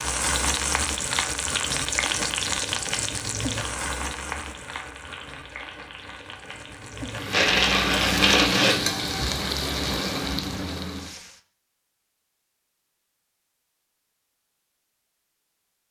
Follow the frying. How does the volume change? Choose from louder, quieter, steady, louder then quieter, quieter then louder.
quieter then louder.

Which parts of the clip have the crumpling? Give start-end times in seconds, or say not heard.
7.3-8.8.